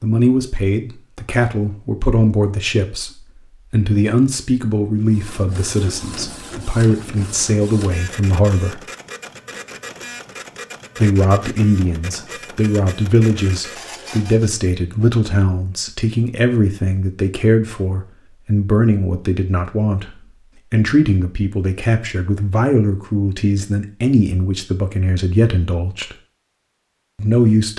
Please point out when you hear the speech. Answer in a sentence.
You can hear the speech from 0.0 to 8.8 s, from 10.9 to 26.1 s and from 27.1 to 27.7 s.